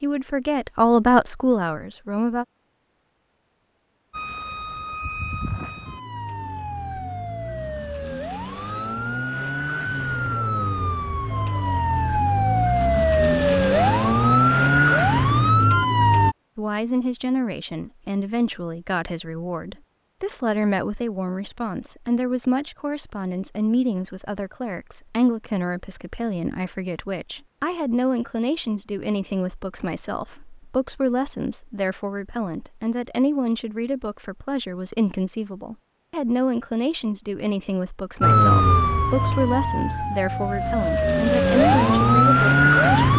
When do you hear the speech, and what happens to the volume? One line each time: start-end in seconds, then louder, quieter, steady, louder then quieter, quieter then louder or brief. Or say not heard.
0.0-2.5 brief
16.6-43.1 steady.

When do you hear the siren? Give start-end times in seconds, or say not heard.
4.1-16.4, 38.2-43.1.